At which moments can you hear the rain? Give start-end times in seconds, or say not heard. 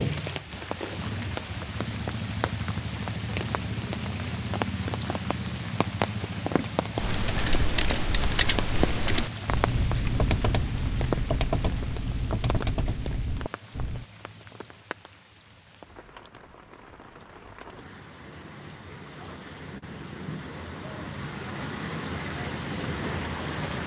0.0-23.8.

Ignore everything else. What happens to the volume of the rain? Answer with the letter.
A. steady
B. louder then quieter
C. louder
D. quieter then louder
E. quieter
D.